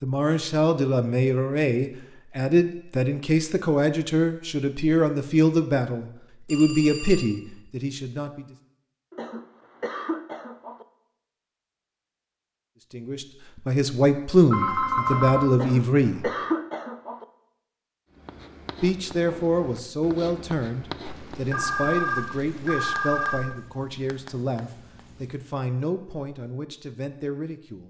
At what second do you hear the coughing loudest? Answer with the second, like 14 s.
16 s.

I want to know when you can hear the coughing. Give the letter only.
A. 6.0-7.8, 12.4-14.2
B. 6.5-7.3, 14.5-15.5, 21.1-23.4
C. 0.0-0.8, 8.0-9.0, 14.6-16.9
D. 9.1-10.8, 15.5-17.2
D.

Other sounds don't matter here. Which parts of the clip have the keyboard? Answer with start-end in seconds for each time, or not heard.
not heard.